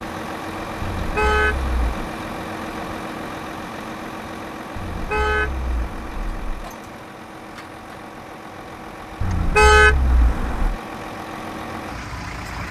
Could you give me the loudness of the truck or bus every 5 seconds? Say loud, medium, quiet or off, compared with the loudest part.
loud, medium, loud.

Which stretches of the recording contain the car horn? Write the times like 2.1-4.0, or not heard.
0.8-2.1, 4.8-6.5, 9.2-10.8.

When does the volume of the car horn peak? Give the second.
10 s.